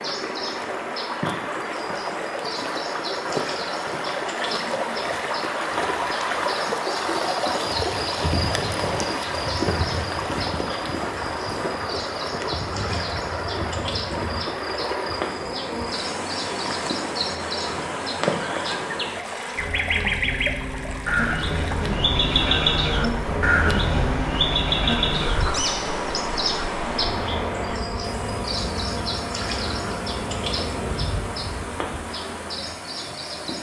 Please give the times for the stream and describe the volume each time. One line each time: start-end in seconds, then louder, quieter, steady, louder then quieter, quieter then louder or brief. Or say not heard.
0.0-33.5 quieter.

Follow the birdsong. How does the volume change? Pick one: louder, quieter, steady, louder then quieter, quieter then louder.
louder then quieter.